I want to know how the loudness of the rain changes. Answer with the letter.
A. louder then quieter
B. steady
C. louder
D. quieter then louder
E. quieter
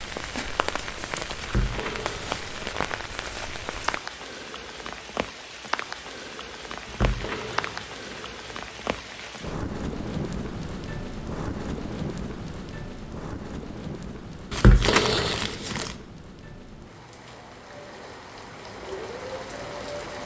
E.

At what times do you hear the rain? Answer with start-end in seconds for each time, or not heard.
0.0-20.2.